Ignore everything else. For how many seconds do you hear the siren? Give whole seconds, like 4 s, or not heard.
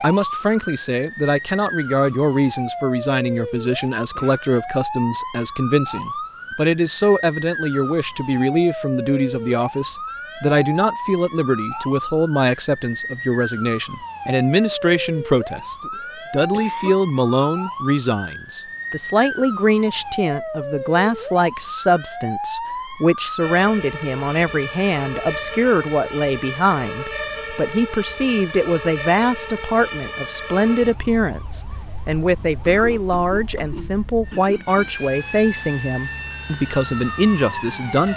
38 s.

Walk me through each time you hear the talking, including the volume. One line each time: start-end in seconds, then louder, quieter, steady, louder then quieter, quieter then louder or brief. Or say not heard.
0.0-38.1 steady.